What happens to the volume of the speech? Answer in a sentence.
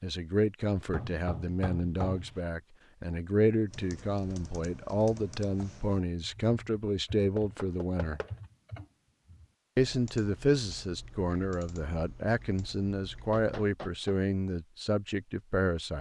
The volume of the speech stays about the same.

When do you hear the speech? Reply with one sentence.
The speech can be heard from 0.0 to 8.2 s and from 9.8 to 15.9 s.